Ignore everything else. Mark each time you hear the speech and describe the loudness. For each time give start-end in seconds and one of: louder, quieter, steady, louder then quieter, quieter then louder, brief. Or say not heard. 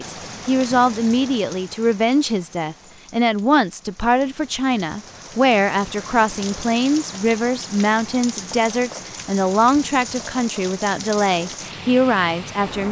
0.0-12.8 steady.